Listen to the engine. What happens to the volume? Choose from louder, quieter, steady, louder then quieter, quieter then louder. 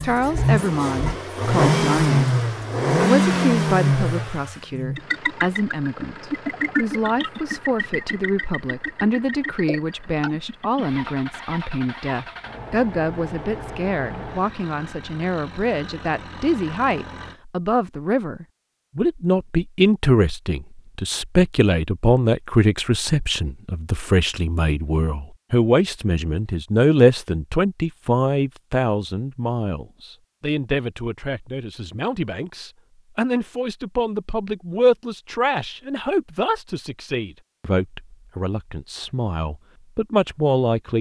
quieter.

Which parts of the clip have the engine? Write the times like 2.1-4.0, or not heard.
0.0-17.4.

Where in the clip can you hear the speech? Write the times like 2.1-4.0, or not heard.
0.0-2.4, 3.0-40.9.